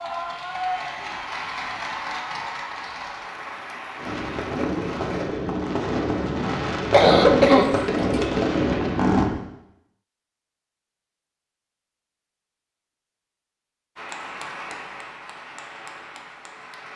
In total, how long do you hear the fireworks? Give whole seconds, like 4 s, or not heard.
5 s.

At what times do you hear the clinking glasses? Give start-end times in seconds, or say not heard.
not heard.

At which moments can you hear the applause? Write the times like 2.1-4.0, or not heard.
0.0-5.3, 13.9-16.9.